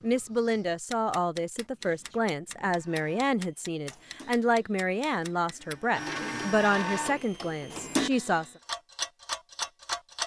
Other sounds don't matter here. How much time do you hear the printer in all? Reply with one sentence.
You can hear the printer for 6 seconds altogether.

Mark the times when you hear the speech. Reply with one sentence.
The speech can be heard from 0.0 to 8.5 s.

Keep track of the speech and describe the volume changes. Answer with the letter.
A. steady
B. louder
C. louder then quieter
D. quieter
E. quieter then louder
A.